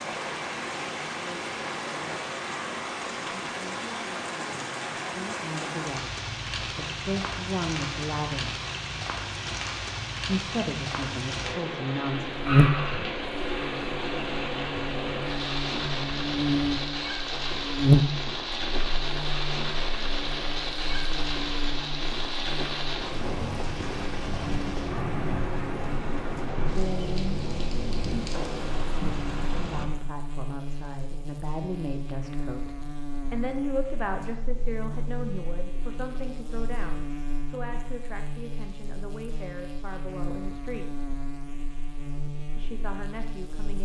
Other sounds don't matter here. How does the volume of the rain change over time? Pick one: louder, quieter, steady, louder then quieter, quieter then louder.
steady.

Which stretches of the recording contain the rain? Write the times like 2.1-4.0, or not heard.
0.0-29.9.